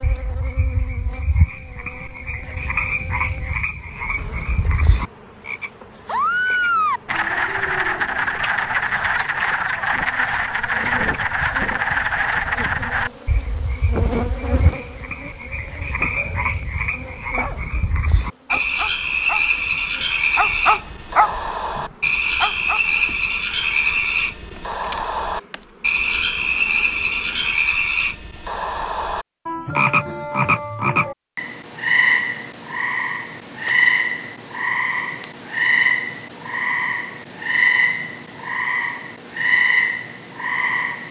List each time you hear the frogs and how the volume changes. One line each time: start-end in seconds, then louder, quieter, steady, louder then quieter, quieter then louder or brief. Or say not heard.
0.0-41.0 steady.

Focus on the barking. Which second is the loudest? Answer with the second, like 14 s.
21 s.